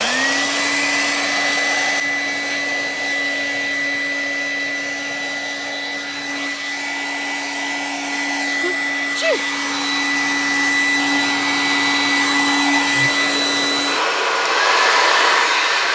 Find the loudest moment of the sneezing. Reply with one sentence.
The loudest moment of the sneezing is at 9 seconds.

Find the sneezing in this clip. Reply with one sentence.
The sneezing can be heard from 2.0 to 2.6 s and from 8.6 to 9.4 s.